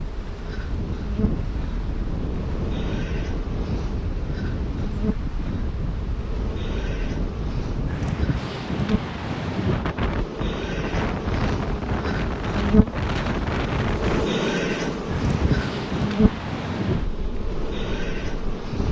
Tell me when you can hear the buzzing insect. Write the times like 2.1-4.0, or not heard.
0.0-18.8.